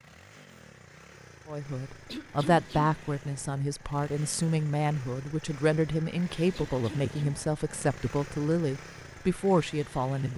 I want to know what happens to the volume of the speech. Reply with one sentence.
The volume of the speech stays about the same.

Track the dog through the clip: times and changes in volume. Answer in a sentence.
You can't hear the dog here.